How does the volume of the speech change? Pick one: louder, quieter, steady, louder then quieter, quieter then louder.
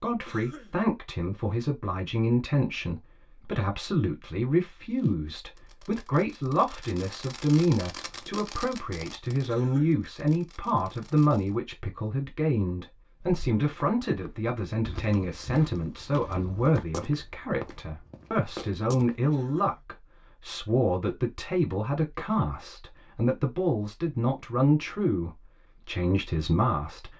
steady.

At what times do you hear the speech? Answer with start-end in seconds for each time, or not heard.
0.0-27.1.